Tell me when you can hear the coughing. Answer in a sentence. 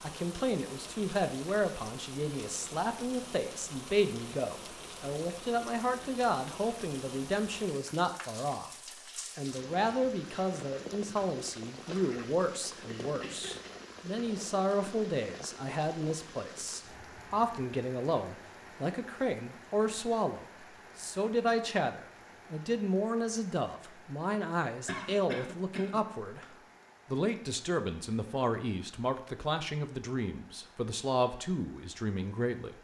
You can hear the coughing from 13.0 to 13.7 s and from 24.9 to 26.4 s.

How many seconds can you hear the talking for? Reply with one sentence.
You can hear the talking for 32 seconds altogether.